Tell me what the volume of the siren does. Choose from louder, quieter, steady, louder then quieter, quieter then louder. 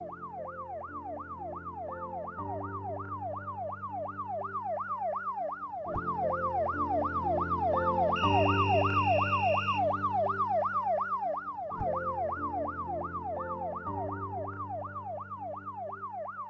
louder then quieter.